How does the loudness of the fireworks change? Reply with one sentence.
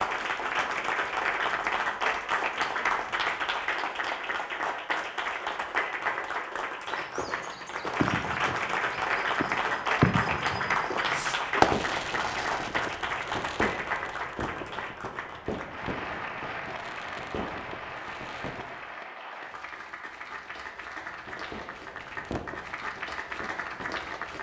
The loudness of the fireworks goes down.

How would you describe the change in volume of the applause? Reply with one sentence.
The volume of the applause goes down.